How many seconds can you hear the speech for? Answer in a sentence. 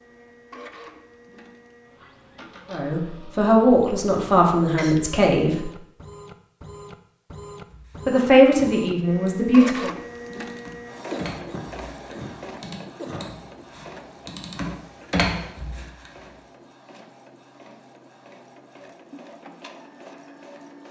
You can hear the speech for 5 seconds altogether.